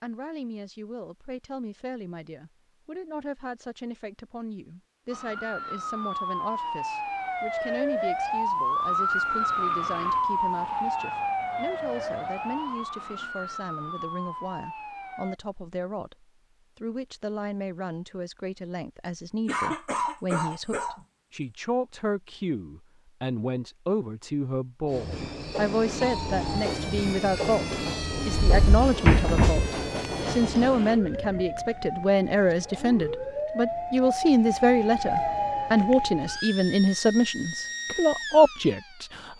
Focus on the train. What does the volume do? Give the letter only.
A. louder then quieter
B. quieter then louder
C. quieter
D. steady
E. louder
D.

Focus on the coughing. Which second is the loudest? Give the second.
20 s.